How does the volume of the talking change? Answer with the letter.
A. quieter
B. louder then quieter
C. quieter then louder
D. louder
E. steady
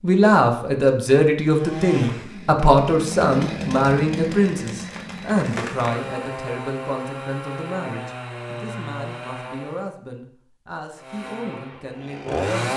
A.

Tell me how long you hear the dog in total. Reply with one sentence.
The dog can't be heard in this clip.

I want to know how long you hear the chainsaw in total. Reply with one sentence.
You can hear the chainsaw for 10 seconds altogether.